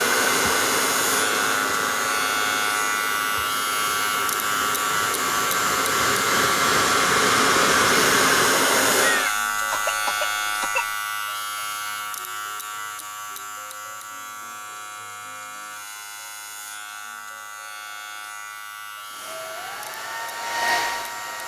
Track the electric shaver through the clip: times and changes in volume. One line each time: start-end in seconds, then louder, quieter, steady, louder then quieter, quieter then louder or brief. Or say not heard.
0.0-21.4 quieter.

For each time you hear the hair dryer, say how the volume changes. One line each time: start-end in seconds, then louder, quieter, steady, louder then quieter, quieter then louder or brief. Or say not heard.
0.0-9.3 quieter then louder
19.1-21.4 brief.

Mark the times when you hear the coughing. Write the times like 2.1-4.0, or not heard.
9.0-10.8.